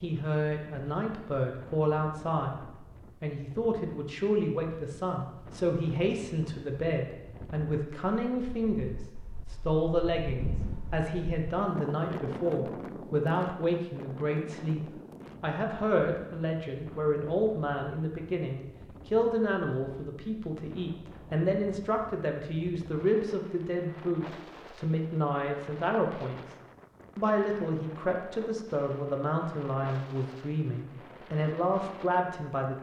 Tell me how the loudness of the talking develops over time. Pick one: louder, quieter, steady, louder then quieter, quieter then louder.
steady.